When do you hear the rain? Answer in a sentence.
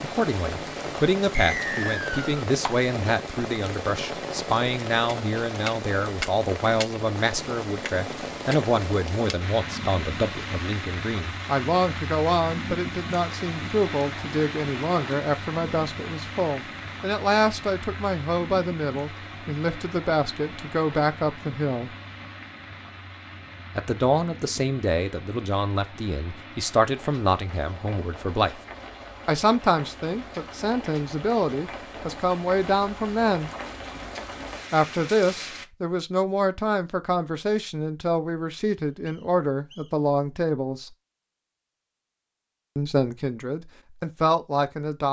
You can hear the rain from 0.0 to 35.6 s.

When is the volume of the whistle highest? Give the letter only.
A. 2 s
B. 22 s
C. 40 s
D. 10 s
A.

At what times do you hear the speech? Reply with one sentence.
You can hear the speech from 0.0 to 21.9 s, from 23.8 to 28.6 s, from 29.2 to 33.5 s, from 34.7 to 40.9 s and from 42.8 to 45.0 s.